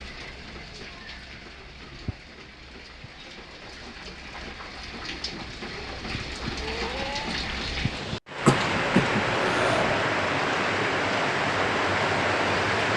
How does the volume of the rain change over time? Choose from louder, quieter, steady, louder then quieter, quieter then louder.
louder.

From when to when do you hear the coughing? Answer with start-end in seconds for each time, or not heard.
8.4-9.9.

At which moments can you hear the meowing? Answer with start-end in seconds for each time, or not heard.
6.3-7.4.